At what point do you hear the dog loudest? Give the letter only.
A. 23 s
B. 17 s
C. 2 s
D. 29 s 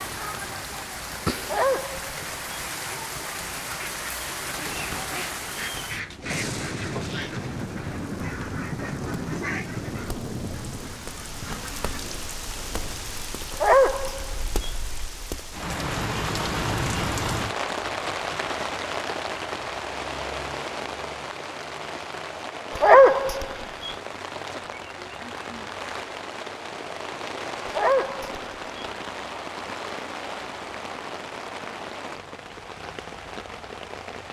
A.